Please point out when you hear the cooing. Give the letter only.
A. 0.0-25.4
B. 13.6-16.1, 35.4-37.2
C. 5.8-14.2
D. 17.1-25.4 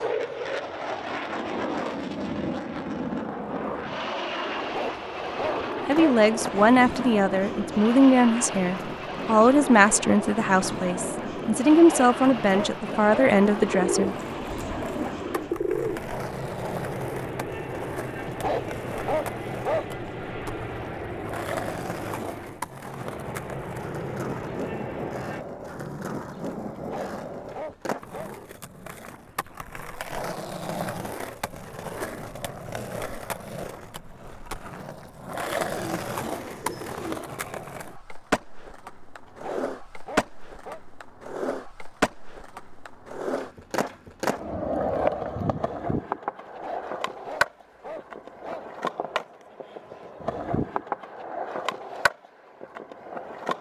B.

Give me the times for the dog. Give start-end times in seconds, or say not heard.
4.5-6.8, 11.7-13.3, 18.2-20.1, 26.8-28.3, 39.2-40.8, 46.5-48.6.